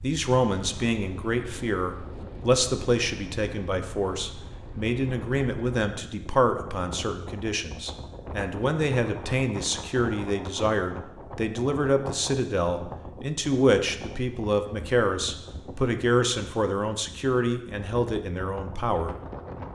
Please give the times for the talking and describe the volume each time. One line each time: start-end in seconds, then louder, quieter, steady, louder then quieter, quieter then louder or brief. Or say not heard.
0.0-19.1 steady.